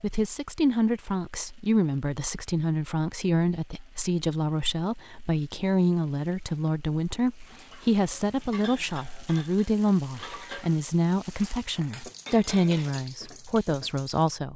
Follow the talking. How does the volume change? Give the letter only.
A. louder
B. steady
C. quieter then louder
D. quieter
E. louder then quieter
B.